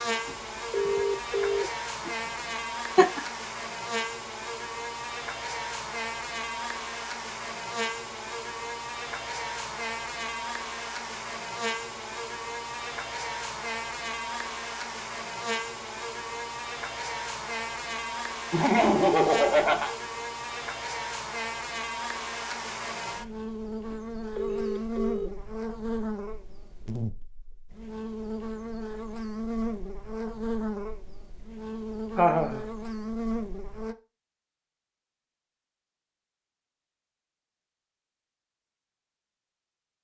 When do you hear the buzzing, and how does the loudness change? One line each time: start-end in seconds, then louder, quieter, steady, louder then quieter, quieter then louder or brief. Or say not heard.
0.0-34.0 steady.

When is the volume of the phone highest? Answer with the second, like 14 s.
1 s.